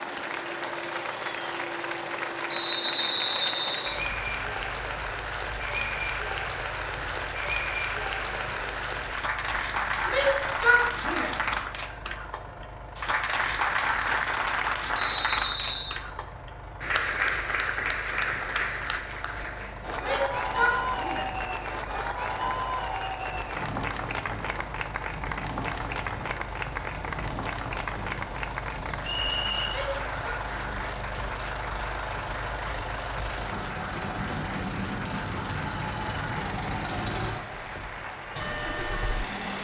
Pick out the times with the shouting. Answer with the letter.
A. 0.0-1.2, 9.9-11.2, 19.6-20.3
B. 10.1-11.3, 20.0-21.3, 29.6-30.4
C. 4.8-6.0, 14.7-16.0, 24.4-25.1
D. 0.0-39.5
B.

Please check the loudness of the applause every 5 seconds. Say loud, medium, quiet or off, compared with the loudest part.
medium, loud, loud, loud, loud, medium, medium, medium.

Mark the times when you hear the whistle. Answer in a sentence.
The whistle can be heard from 2.5 to 4.0 s, from 15.0 to 15.9 s and from 29.1 to 29.8 s.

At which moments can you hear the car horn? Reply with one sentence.
The car horn can't be heard in this clip.